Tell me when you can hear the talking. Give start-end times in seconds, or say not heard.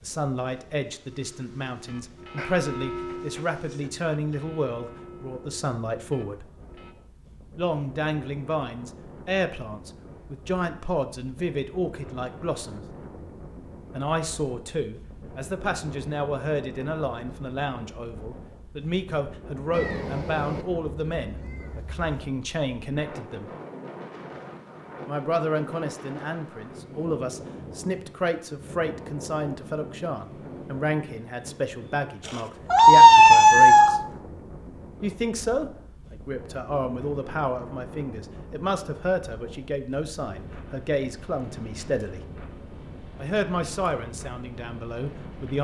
0.0-6.5, 7.5-12.8, 13.9-23.5, 25.1-34.0, 35.0-42.2, 43.1-45.6.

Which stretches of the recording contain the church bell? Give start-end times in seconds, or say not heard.
1.1-7.0.